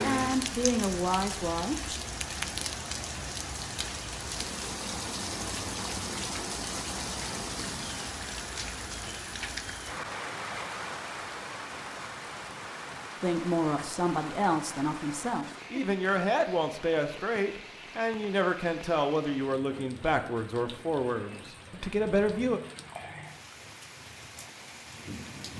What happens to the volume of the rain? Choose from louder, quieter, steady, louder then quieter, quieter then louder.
quieter.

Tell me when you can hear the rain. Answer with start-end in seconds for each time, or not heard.
0.0-25.5.